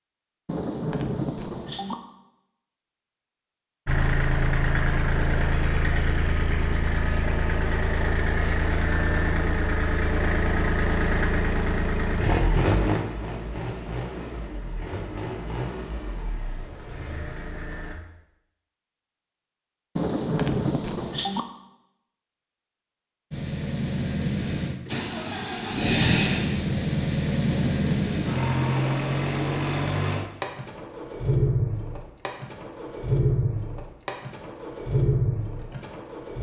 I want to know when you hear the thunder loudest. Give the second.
21 s.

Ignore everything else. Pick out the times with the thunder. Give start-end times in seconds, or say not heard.
0.5-1.9, 19.9-21.4, 27.6-28.9.